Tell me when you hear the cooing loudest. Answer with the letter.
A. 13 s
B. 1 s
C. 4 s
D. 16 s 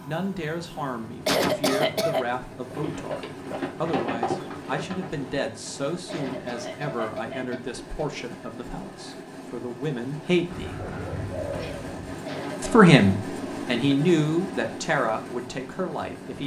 C.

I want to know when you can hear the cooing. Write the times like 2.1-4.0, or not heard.
2.8-5.4, 10.5-12.2.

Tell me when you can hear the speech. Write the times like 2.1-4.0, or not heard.
0.0-10.8, 12.6-16.4.